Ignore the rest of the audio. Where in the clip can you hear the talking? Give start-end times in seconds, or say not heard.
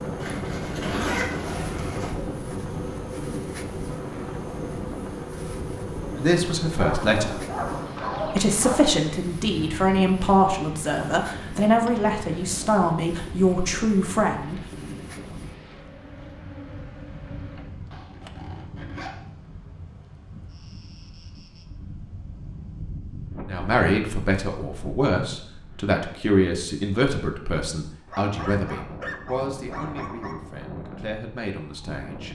6.2-7.4, 8.2-14.6, 23.4-32.2.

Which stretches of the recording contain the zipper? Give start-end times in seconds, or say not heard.
0.2-2.1, 17.9-19.3.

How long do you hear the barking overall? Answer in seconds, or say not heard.
5 s.